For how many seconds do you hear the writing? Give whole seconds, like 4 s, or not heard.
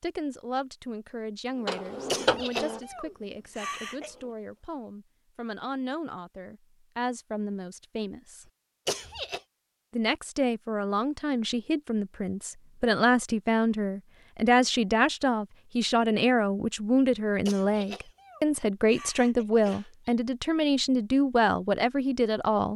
not heard.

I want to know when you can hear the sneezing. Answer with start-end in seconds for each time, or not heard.
2.0-4.1, 8.8-9.4, 17.4-20.1.